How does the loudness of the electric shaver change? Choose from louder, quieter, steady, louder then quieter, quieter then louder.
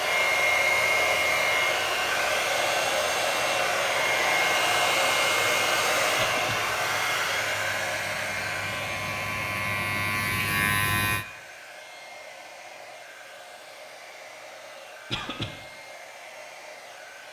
louder.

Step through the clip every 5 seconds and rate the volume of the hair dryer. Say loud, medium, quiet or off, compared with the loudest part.
loud, loud, quiet, quiet.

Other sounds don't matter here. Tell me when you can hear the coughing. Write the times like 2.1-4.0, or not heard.
6.2-6.6, 15.1-15.5.